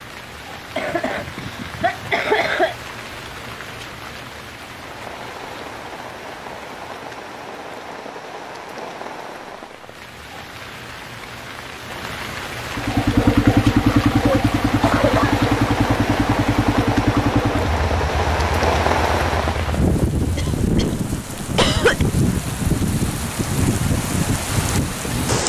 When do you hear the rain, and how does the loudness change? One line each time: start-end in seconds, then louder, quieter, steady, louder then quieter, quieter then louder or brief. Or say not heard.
0.0-25.4 louder.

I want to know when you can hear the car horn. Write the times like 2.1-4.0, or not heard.
not heard.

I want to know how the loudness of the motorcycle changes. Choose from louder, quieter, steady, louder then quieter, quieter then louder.
quieter.